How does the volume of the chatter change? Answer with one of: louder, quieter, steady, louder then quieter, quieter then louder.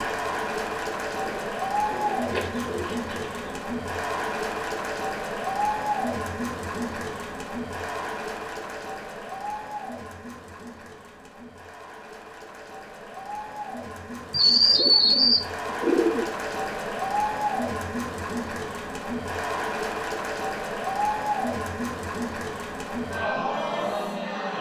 quieter then louder.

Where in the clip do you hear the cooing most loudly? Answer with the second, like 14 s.
15 s.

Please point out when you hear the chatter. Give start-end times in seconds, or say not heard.
0.0-24.5.